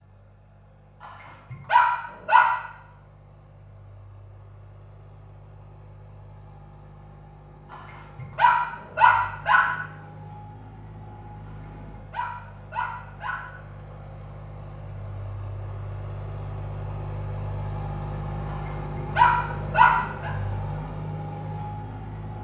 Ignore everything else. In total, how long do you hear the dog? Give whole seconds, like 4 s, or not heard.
7 s.